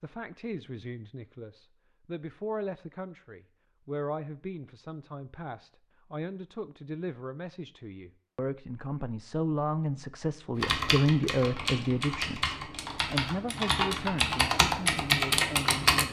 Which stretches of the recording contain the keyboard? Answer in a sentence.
You can hear the keyboard from 10.6 to 16.0 s.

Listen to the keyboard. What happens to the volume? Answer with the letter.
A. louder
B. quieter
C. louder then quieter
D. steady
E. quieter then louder
A.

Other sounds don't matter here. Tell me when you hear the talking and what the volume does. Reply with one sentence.
You can hear the talking from 0.0 to 16.0 s, getting louder then quieter.